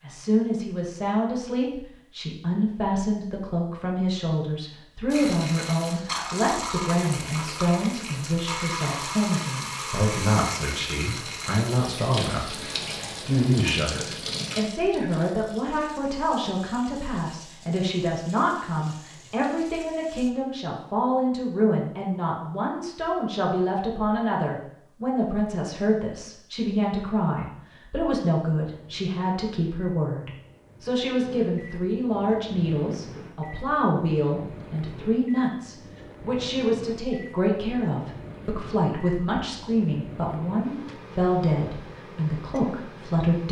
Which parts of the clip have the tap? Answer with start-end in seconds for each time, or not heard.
5.1-20.4.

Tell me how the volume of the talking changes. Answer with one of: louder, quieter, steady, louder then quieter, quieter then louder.
steady.